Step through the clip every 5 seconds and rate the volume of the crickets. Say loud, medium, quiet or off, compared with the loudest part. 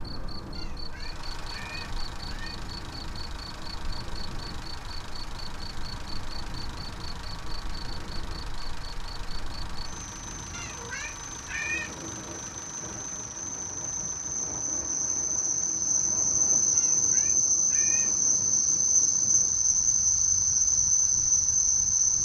quiet, quiet, medium, loud, loud.